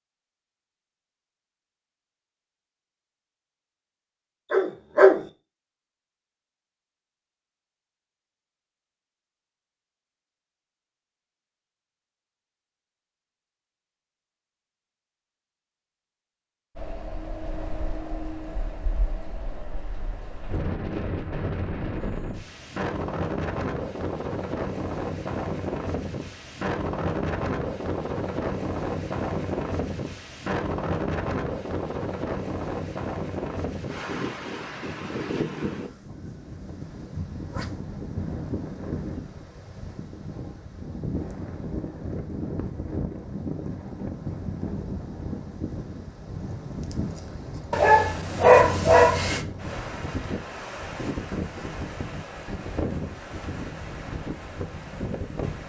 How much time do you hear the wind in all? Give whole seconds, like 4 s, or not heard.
39 s.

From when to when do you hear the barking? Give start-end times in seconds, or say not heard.
4.5-5.2, 47.7-49.4.